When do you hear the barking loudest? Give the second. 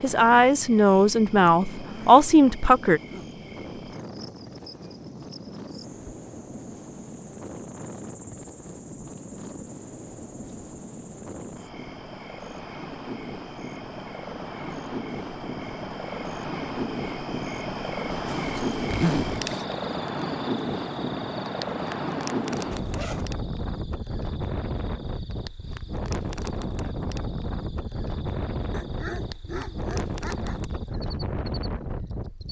29 s.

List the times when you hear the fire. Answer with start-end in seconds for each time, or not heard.
not heard.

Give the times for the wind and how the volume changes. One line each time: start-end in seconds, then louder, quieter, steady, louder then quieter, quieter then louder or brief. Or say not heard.
0.0-32.4 louder.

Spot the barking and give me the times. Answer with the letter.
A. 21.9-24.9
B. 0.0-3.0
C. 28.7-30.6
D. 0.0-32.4
C.